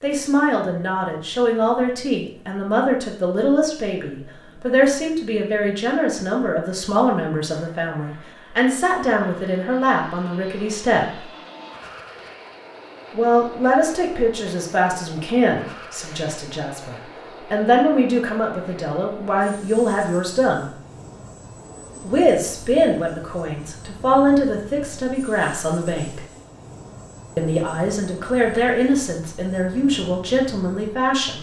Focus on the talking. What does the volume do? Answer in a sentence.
The volume of the talking stays about the same.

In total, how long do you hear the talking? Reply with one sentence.
You can hear the talking for 27 seconds altogether.